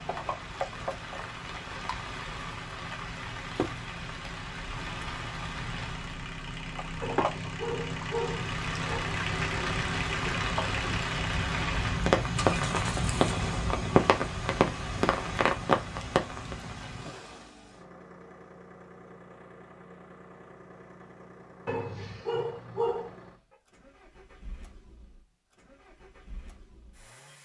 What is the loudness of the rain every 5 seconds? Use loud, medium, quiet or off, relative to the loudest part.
medium, medium, loud, loud, off, off.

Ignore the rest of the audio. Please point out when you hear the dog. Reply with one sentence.
You can hear the dog from 7.0 to 9.0 s and from 21.6 to 23.1 s.